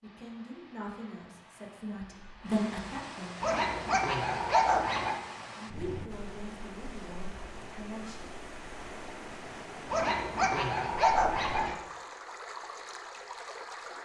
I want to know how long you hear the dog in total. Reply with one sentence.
You can hear the dog for 4 seconds altogether.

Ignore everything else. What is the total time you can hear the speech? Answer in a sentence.
You can hear the speech for 6 seconds altogether.